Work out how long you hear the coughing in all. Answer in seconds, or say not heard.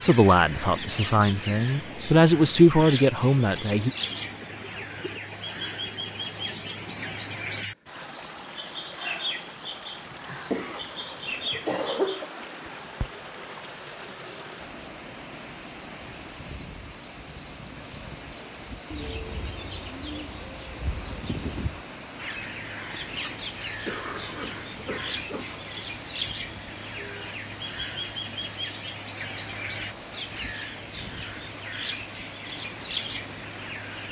4 s.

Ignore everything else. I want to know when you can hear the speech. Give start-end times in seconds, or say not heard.
0.0-3.9.